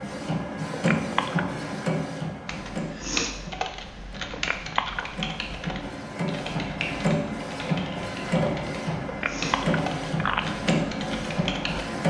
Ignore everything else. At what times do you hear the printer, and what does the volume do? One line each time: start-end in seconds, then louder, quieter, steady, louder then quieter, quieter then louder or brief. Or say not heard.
0.0-12.0 quieter then louder.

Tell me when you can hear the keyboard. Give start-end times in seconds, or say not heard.
2.5-11.8.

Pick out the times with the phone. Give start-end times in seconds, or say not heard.
0.7-1.6, 4.3-5.1, 9.1-10.4.